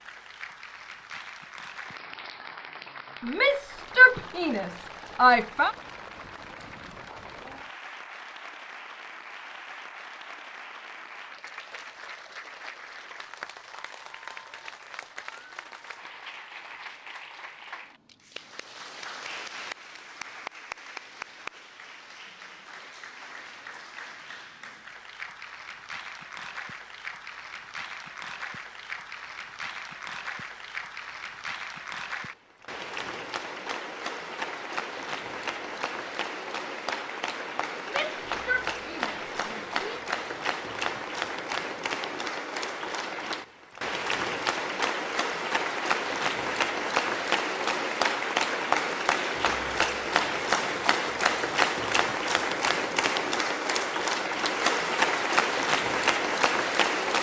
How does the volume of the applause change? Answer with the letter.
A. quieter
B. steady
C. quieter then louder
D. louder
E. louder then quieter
D.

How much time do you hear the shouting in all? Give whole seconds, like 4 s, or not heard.
5 s.